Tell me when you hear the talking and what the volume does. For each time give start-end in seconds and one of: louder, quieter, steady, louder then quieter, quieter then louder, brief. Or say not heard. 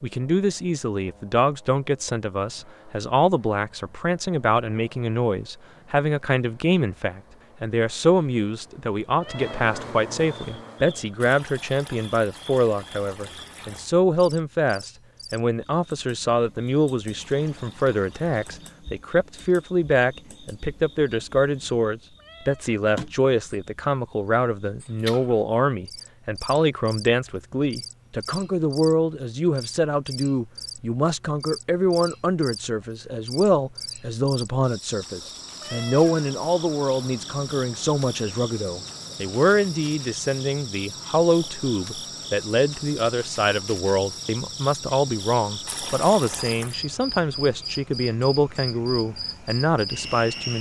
0.0-50.5 steady.